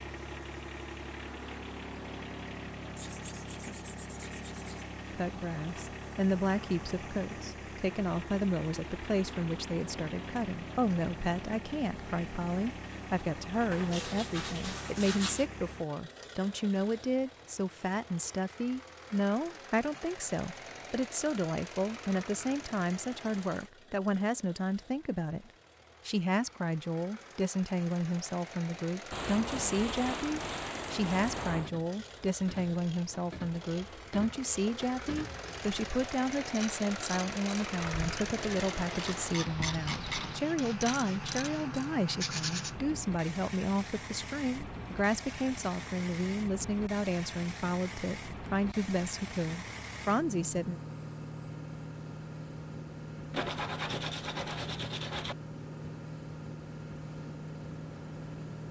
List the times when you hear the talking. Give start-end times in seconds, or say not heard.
5.1-50.8.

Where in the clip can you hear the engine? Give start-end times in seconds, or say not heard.
0.0-58.6.